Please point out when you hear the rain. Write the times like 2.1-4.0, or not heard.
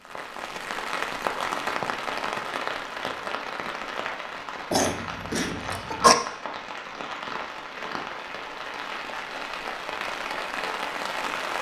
0.0-11.5.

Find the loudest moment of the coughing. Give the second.
6 s.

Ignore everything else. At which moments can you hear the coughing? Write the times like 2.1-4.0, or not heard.
4.7-6.2.